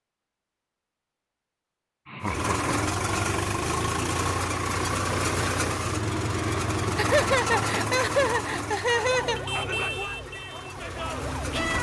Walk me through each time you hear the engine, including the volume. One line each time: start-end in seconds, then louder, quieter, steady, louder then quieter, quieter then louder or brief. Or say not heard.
2.2-11.7 quieter.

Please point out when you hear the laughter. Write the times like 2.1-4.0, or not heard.
2.0-2.8, 7.0-9.4.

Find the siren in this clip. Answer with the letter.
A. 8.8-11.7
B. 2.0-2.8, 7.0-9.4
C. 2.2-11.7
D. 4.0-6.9
A.